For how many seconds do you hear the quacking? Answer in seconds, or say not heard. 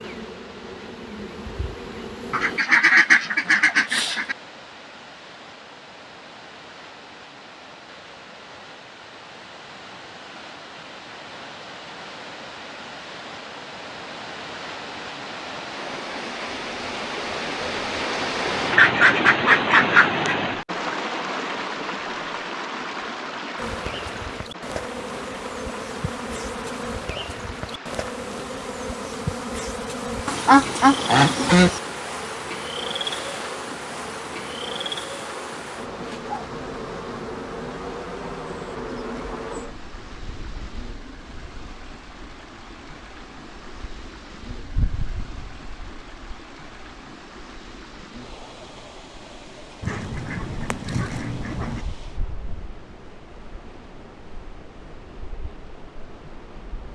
7 s.